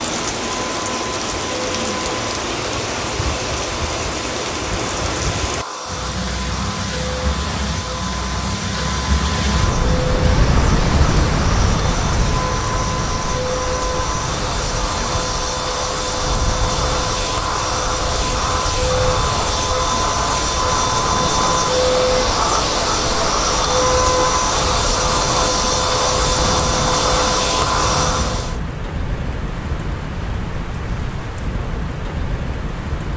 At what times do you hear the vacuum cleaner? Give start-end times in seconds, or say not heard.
0.0-28.6.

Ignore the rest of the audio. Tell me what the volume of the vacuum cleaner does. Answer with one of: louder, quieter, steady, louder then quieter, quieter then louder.
louder.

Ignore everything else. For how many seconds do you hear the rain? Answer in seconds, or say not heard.
33 s.